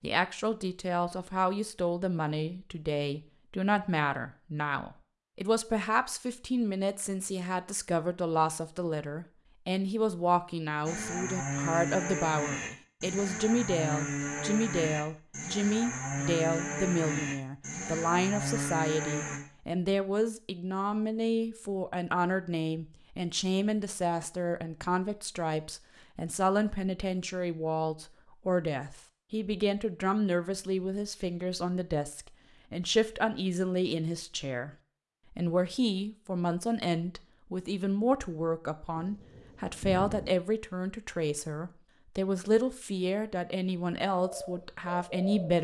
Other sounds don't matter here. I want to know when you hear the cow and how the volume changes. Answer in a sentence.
The cow can be heard from 10.8 to 19.4 s, at a steady volume.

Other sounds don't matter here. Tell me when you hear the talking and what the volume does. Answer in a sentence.
The talking can be heard from 0.0 to 45.6 s, at a steady volume.